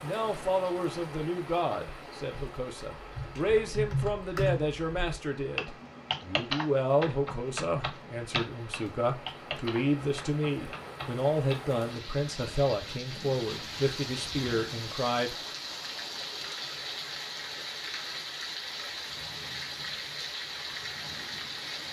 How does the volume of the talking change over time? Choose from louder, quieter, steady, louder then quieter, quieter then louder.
steady.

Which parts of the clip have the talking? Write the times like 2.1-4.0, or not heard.
0.0-15.3.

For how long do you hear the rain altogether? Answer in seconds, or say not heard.
22 s.